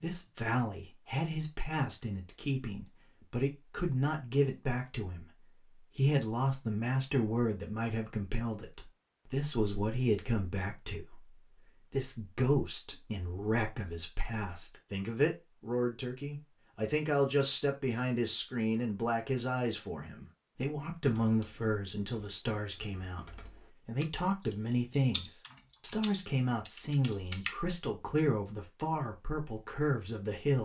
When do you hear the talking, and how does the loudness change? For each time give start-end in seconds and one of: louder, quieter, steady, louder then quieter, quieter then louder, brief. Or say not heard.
0.0-30.6 steady.